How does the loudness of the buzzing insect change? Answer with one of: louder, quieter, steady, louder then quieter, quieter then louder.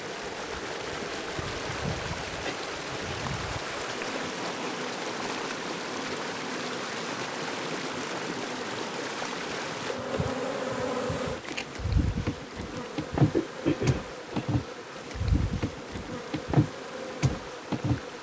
louder.